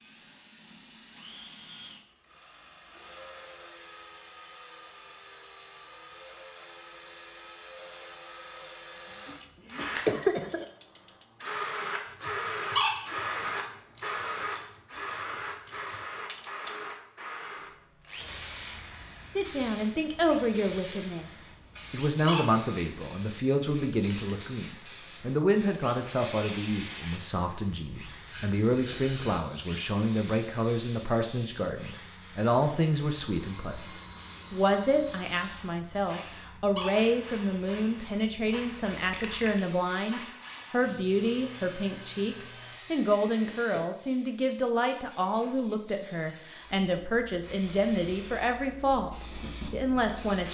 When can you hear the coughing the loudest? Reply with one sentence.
The loudest moment of the coughing is at 10 seconds.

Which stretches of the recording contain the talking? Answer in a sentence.
The talking can be heard from 19.4 to 49.1 s and from 49.7 to 50.5 s.